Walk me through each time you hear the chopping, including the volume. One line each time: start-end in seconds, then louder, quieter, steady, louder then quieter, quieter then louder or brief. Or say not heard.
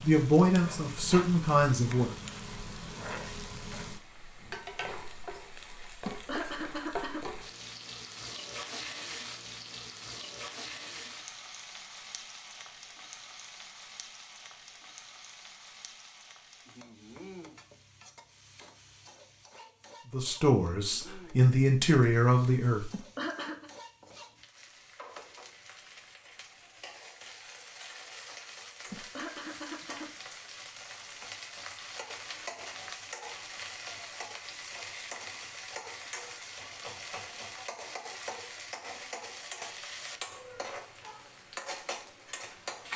not heard.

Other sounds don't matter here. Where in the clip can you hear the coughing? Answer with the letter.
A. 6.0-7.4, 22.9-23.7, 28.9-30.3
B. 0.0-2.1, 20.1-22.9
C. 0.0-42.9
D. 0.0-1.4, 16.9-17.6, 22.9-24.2
A.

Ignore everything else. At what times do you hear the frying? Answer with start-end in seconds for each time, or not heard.
0.0-42.9.